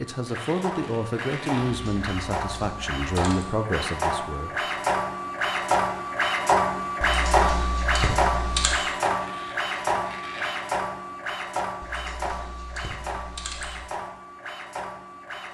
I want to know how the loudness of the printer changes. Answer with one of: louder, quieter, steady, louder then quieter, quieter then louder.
louder then quieter.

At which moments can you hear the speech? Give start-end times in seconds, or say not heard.
0.0-4.5.